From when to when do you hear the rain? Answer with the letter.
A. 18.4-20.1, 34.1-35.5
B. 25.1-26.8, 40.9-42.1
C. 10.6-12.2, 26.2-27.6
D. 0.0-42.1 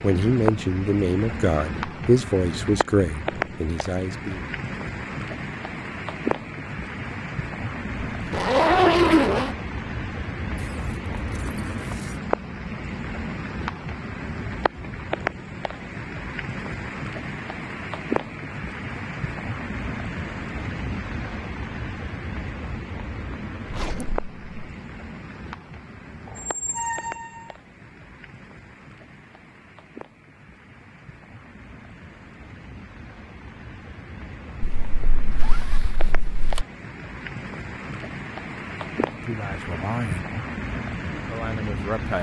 D.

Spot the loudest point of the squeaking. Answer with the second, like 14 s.
27 s.